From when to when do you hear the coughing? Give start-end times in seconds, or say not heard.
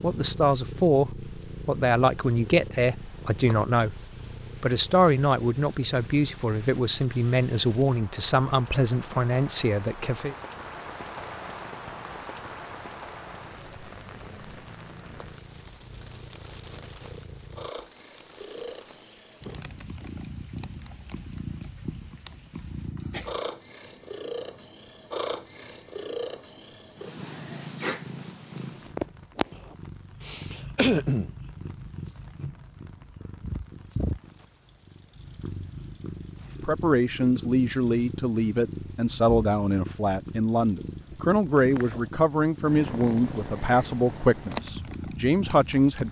30.2-31.3.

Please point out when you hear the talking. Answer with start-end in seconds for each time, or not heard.
0.0-4.0, 4.6-10.3, 36.6-46.0.